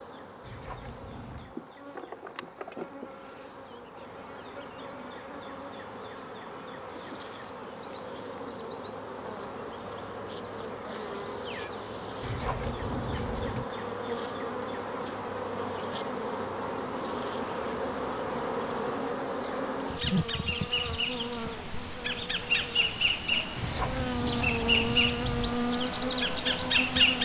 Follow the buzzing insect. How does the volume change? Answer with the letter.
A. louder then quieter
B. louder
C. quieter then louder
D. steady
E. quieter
B.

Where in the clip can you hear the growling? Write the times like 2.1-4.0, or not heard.
0.4-1.6, 12.2-13.7, 23.6-25.6.